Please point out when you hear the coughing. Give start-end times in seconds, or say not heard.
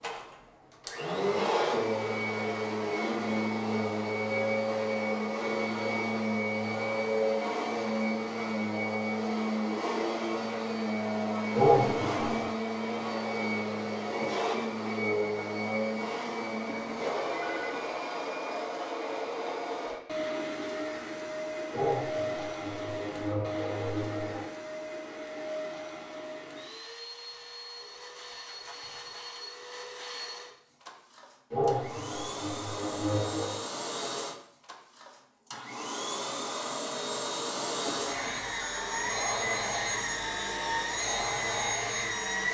11.6-12.5, 21.7-24.5, 31.5-33.6.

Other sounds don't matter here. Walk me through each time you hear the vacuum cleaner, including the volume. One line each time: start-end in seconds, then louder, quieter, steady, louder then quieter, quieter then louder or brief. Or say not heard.
0.0-42.4 quieter then louder.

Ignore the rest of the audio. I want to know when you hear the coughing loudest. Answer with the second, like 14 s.
12 s.